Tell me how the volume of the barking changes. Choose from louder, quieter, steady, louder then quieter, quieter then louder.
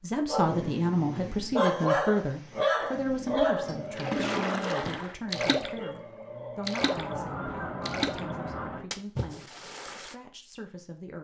quieter.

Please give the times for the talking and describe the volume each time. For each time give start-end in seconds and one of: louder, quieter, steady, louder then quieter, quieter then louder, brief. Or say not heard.
0.0-11.1 quieter.